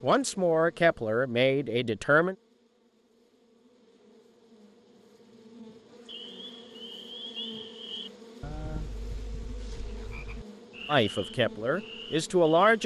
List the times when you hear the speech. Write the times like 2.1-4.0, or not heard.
0.0-2.4, 10.8-12.8.